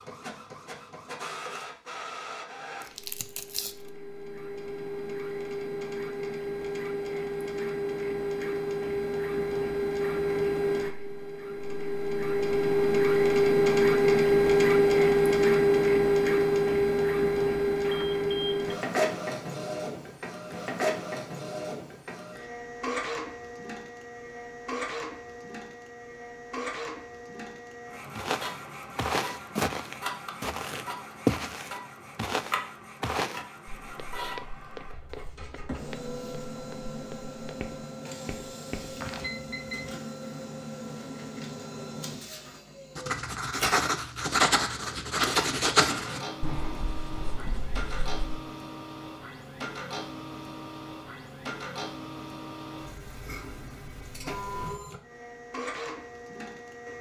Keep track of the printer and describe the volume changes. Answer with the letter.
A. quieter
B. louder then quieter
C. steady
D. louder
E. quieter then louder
B.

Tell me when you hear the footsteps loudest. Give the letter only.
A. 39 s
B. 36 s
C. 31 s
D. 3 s
C.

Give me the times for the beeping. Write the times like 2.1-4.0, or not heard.
17.8-18.8, 39.2-40.0.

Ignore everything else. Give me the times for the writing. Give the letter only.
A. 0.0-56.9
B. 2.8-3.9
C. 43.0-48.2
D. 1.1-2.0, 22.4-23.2
C.